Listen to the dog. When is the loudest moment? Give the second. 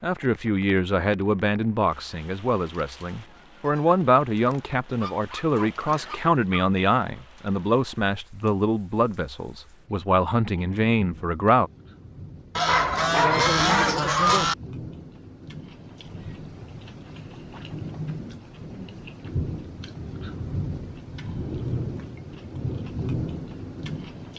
13 s.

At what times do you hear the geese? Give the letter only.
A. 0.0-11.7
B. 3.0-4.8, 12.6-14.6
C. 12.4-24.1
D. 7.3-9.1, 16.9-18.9
B.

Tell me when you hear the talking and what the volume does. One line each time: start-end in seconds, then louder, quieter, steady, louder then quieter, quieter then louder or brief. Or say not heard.
0.0-11.7 steady.